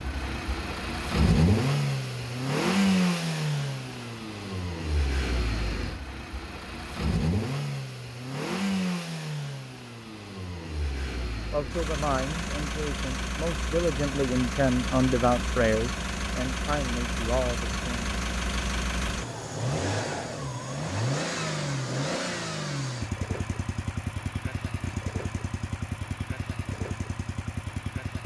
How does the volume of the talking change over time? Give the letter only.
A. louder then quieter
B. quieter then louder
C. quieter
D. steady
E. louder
A.